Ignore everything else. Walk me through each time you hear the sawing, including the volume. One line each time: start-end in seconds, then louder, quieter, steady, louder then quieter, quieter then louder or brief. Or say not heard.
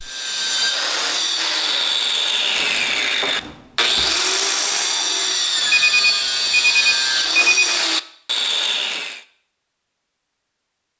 0.0-9.2 steady.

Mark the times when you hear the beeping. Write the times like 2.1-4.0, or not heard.
5.7-7.7.